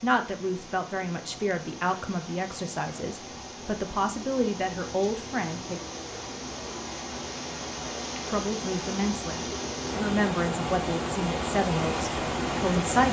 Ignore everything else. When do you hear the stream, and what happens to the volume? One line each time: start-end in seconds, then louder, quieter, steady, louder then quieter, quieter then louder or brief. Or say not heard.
0.0-13.0 louder.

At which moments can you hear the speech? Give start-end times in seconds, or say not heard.
0.0-5.8, 8.2-13.0.